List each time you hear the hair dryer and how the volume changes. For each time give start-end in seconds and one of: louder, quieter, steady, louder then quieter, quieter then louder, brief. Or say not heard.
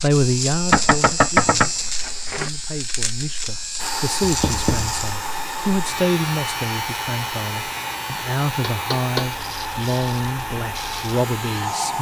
3.8-11.9 steady.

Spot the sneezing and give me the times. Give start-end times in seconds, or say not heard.
not heard.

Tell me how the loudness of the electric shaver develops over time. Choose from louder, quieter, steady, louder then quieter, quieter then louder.
quieter.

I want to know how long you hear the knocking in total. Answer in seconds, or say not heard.
3 s.